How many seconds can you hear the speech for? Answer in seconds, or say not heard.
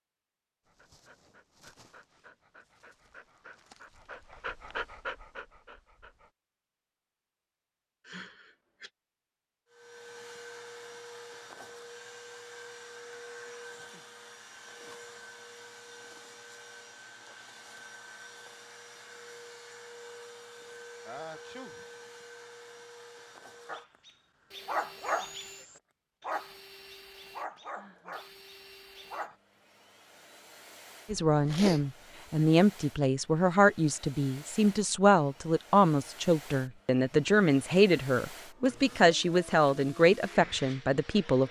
10 s.